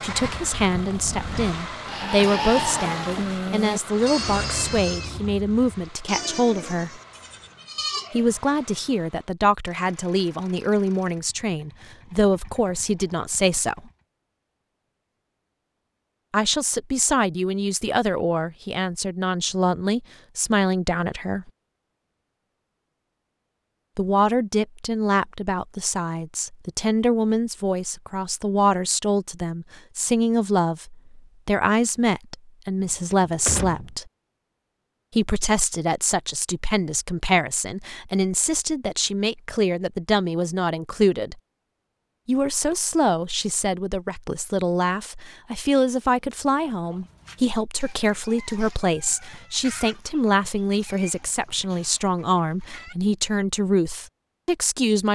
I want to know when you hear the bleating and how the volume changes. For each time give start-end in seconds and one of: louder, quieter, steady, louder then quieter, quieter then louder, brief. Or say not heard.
0.0-8.3 louder then quieter.